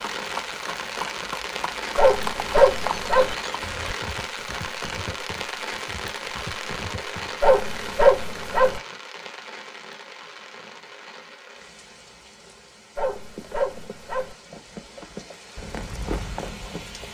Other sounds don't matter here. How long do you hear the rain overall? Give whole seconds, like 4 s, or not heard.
17 s.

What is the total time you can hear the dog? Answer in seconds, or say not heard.
4 s.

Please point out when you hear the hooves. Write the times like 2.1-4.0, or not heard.
0.0-7.5, 13.2-17.1.